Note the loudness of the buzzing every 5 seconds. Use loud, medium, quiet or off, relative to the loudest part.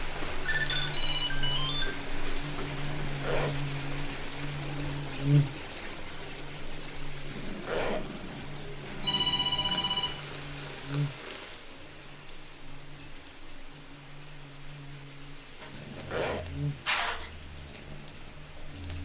medium, loud, medium, medium.